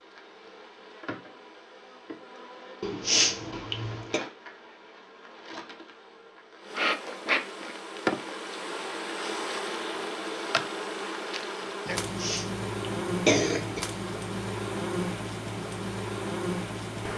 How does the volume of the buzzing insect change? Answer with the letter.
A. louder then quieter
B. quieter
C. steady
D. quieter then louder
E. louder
E.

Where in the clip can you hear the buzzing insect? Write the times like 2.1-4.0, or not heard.
0.0-17.1.